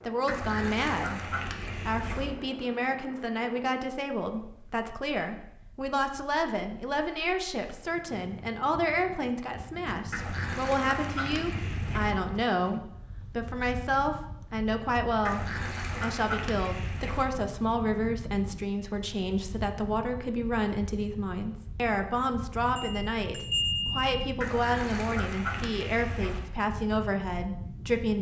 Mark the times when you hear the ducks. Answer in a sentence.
You can hear the ducks from 0.2 to 2.3 s, from 10.1 to 12.2 s, from 15.2 to 17.2 s and from 24.4 to 26.4 s.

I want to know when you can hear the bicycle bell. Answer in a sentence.
You can hear the bicycle bell from 22.8 to 24.1 s.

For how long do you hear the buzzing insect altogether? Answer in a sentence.
You can't hear the buzzing insect here.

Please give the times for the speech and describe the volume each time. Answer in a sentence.
You can hear the speech from 0.0 to 28.1 s, at a steady volume.